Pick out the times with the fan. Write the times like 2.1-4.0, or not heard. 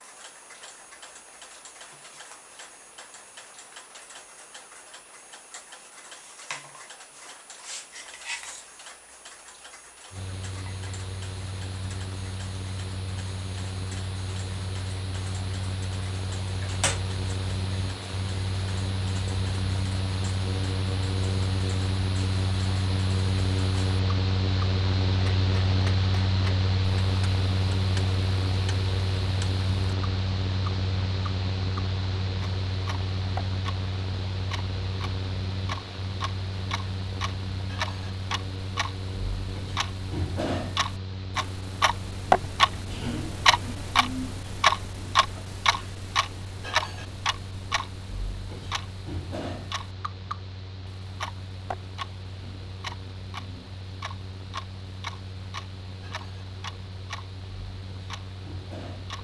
10.1-59.1.